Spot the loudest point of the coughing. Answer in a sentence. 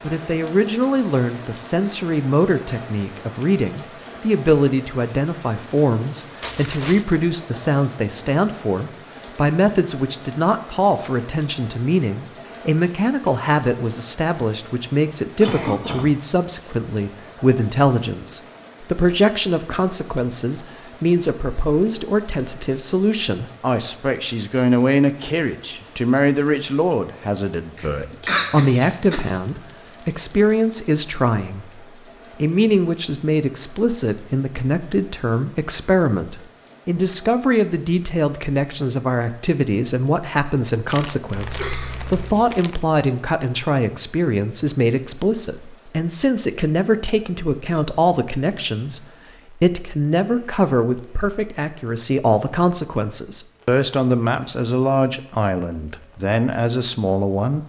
The volume of the coughing peaks at 28 seconds.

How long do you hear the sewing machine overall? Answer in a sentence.
The sewing machine can't be heard in this clip.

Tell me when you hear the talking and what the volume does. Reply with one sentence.
You can hear the talking from 0.0 to 57.6 s, at a steady volume.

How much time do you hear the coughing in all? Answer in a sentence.
You can hear the coughing for 3 seconds altogether.